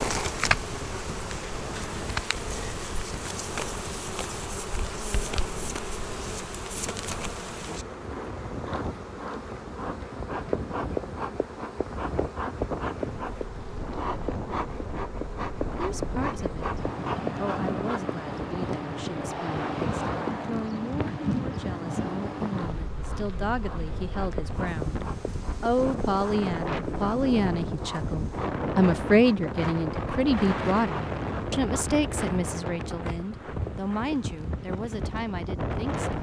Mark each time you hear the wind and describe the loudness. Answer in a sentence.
The wind can be heard from 0.0 to 36.1 s, getting louder.